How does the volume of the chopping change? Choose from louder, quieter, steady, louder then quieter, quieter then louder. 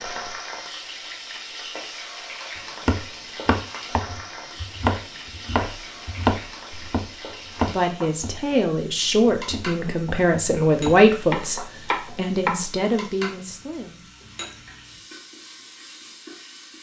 quieter then louder.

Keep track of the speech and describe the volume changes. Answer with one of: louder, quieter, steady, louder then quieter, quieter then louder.
louder then quieter.